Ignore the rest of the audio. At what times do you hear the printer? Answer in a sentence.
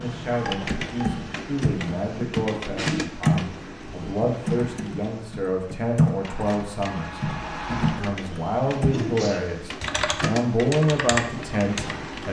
The printer can be heard from 0.0 to 12.2 s.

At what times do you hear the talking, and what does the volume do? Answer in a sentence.
You can hear the talking from 0.0 to 12.2 s, getting louder.